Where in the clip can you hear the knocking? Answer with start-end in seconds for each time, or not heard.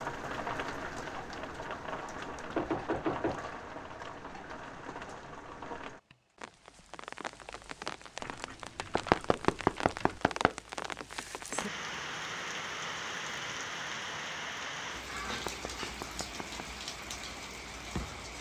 2.5-3.5, 8.9-10.5, 15.3-16.4.